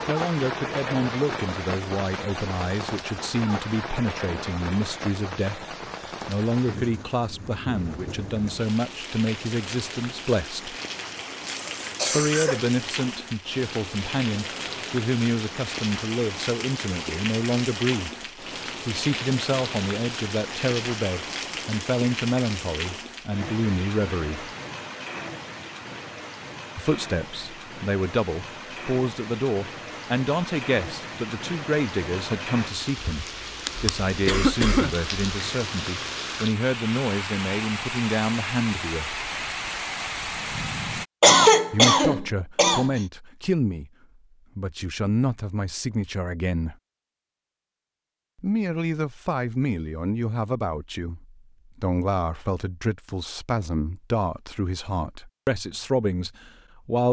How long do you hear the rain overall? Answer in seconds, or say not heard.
41 s.